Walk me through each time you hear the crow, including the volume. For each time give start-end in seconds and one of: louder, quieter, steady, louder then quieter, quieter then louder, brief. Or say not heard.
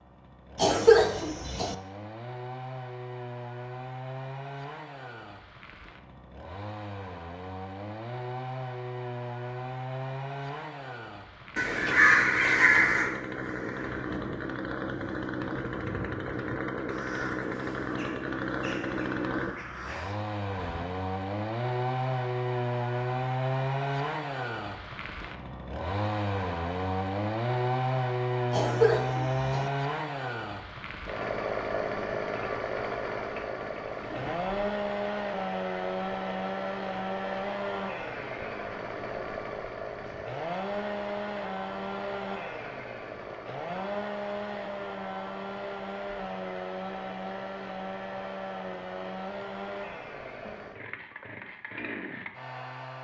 11.6-20.9 quieter.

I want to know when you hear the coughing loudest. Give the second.
1 s.